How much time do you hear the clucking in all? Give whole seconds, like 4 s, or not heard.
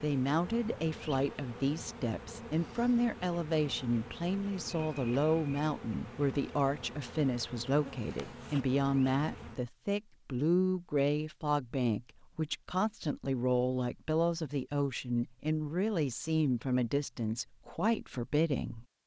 not heard.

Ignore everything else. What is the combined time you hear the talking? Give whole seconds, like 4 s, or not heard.
19 s.